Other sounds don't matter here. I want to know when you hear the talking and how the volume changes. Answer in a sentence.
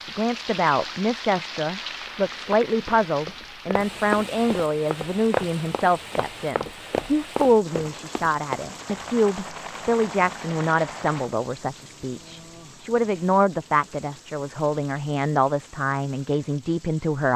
The talking can be heard from 0.0 to 17.3 s, at a steady volume.